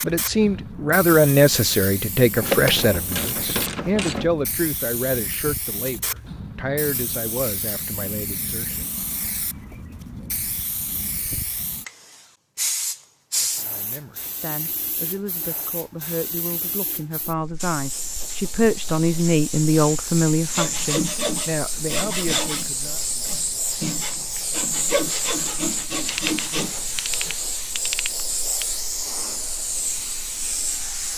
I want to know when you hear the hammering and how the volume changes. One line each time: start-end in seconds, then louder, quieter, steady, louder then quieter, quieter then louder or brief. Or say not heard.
not heard.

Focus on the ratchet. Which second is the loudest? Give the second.
3 s.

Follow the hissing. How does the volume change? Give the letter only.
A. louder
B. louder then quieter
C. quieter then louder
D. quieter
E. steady
A.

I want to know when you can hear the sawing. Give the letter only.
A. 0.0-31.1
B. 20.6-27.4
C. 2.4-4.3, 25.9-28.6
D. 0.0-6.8
B.